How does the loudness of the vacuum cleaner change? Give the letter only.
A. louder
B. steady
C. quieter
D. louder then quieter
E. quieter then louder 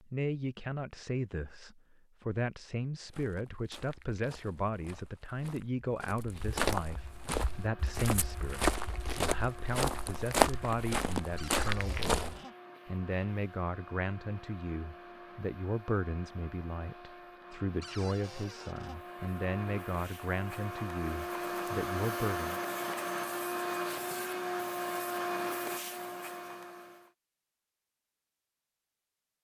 A.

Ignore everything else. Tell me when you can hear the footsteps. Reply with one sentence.
You can hear the footsteps from 3.0 to 12.4 s.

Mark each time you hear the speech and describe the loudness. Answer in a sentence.
You can hear the speech from 0.0 to 22.6 s, at a steady volume.